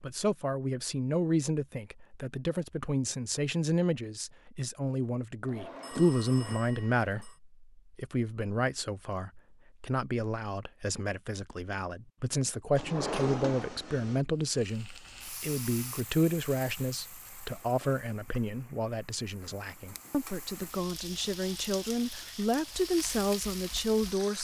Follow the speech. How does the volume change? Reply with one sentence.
The volume of the speech stays about the same.